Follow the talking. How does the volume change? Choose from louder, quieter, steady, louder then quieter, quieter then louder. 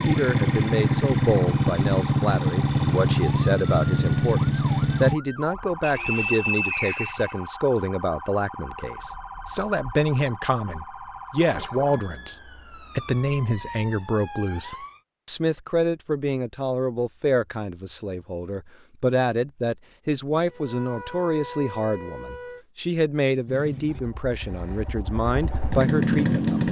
steady.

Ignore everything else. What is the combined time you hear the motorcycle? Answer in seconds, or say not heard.
8 s.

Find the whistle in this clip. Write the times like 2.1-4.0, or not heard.
5.8-7.8.